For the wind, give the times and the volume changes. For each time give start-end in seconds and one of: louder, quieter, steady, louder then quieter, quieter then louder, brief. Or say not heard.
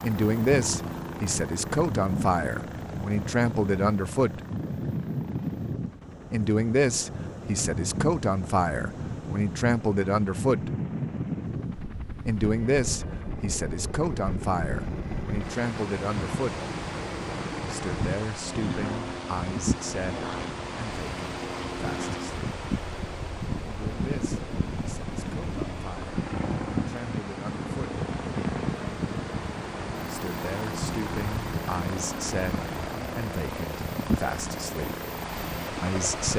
0.2-36.3 steady.